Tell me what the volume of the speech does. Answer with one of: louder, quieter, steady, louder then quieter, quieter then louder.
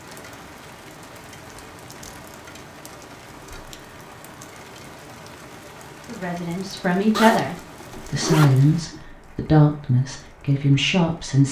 quieter then louder.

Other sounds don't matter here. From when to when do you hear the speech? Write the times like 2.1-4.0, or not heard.
6.0-11.4.